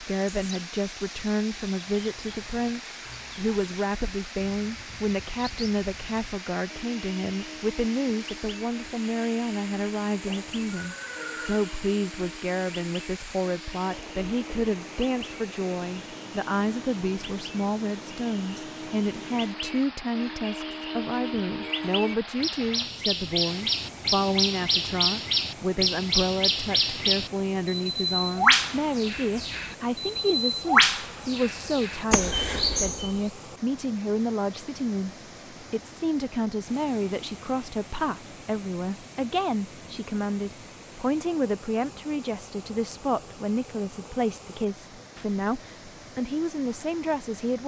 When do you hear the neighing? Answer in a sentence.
The neighing can be heard from 10.2 to 11.7 s.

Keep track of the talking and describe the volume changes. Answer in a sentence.
The volume of the talking stays about the same.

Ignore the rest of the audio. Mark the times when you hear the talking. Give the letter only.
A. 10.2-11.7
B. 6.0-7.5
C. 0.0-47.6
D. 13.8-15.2
C.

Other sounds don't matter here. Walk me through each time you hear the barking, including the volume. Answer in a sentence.
You can't hear the barking here.